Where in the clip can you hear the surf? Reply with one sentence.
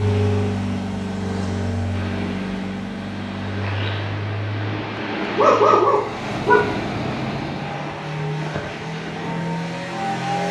The surf can be heard from 0.0 to 10.4 s.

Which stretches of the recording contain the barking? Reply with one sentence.
You can hear the barking from 5.0 to 6.8 s.